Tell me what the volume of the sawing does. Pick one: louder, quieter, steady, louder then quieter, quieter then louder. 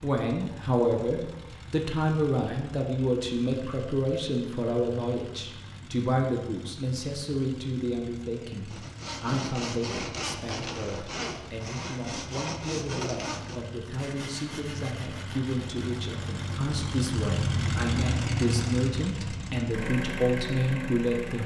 quieter.